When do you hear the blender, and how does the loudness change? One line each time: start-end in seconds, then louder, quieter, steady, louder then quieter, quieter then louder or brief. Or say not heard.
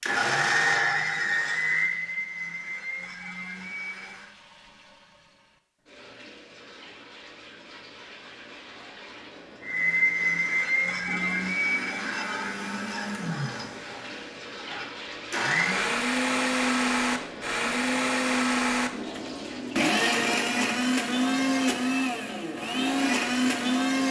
0.0-4.3 quieter
9.6-24.0 quieter then louder.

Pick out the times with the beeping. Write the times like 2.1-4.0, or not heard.
not heard.